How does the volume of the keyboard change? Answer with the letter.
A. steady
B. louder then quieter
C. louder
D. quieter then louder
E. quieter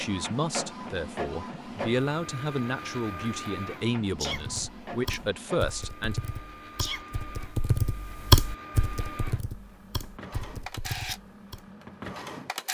B.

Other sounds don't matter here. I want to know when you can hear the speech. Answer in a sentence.
The speech can be heard from 0.0 to 6.2 s.